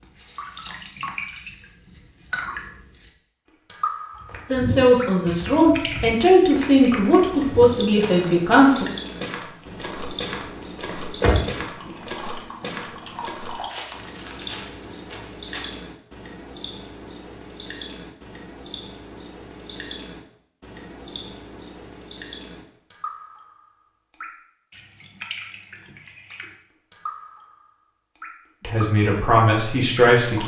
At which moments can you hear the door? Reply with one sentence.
The door can be heard from 10.8 to 11.9 s.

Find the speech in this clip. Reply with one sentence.
You can hear the speech from 4.5 to 8.8 s and from 28.6 to 30.4 s.